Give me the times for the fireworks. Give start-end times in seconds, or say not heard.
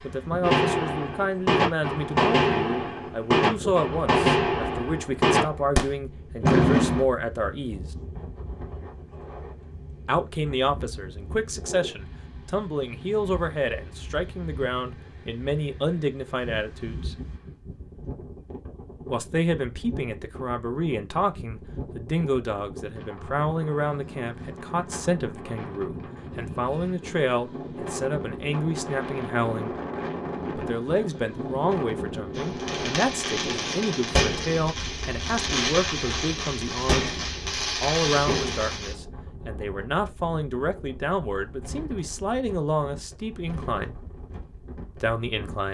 0.4-7.0, 32.4-39.0.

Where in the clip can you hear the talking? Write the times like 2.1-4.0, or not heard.
0.0-7.8, 10.1-17.1, 19.1-29.8, 30.6-37.1, 37.8-44.0, 45.0-45.6.